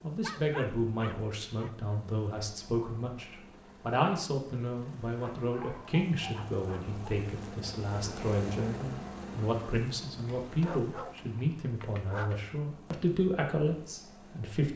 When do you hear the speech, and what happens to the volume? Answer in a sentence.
You can hear the speech from 0.0 to 14.7 s, at a steady volume.